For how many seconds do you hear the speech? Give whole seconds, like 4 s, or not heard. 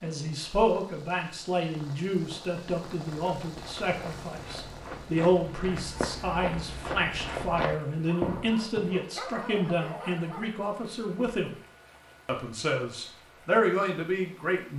14 s.